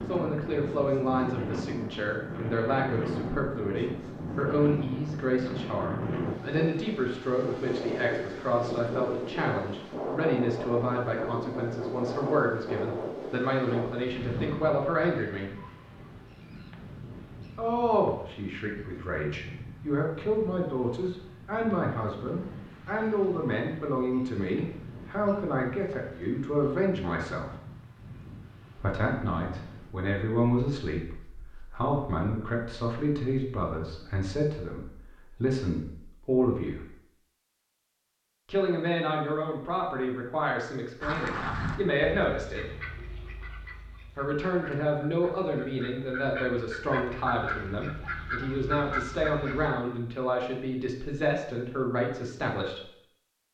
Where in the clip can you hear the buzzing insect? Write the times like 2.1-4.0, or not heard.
not heard.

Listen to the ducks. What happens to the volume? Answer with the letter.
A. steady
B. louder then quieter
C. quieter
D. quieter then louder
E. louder
D.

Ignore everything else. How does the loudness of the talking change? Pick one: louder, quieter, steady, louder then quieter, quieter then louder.
steady.